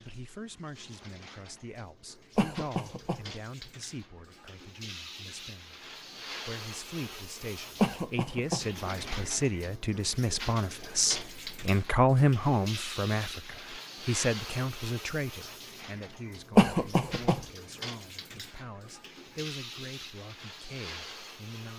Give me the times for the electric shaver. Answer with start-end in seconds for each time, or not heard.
not heard.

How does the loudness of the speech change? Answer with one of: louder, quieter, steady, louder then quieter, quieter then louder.
louder then quieter.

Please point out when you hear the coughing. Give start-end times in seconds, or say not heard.
2.4-3.2, 7.8-8.7, 16.6-17.4.